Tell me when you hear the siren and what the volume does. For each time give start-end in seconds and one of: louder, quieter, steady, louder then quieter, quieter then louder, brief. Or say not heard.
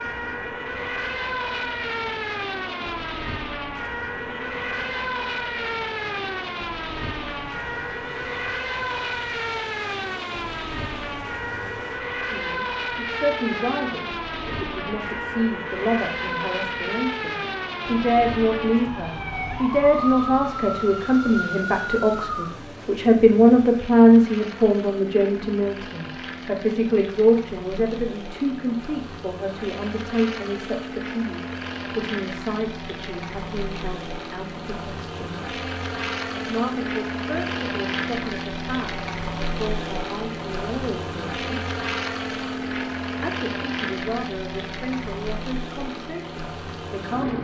0.0-22.6 steady.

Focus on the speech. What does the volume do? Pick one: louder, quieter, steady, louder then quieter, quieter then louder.
louder then quieter.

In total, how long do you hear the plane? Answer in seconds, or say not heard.
47 s.